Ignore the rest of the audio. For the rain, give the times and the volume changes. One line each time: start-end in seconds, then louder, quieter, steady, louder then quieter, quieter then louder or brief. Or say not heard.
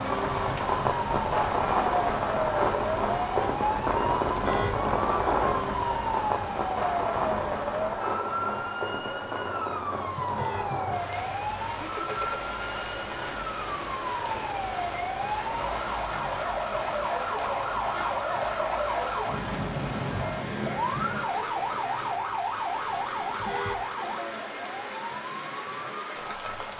0.0-26.7 quieter.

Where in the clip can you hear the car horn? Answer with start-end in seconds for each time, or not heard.
4.3-4.8, 10.2-10.8, 23.4-23.9.